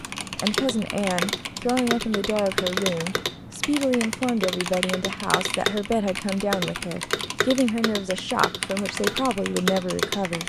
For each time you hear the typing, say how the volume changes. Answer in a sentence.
The typing can be heard from 0.0 to 10.4 s, at a steady volume.